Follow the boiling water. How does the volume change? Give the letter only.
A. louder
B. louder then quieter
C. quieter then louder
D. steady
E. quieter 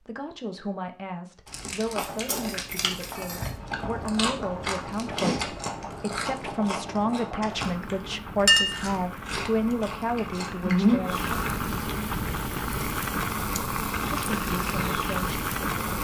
A.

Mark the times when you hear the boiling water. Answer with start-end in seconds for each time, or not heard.
3.5-16.0.